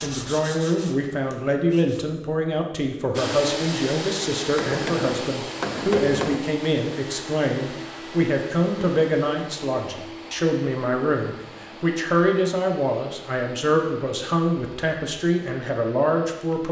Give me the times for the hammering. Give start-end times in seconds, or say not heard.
4.4-6.4.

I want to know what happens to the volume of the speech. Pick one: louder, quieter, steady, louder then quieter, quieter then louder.
steady.